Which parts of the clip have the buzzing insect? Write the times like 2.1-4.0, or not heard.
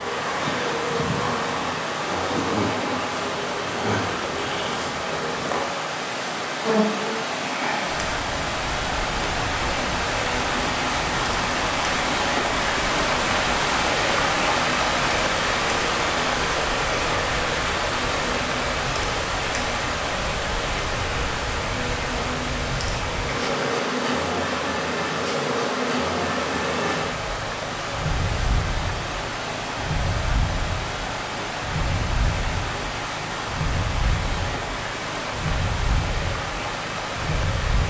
0.0-37.8.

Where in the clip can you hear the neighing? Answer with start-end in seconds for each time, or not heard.
not heard.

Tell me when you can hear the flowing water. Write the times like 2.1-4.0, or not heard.
0.0-37.8.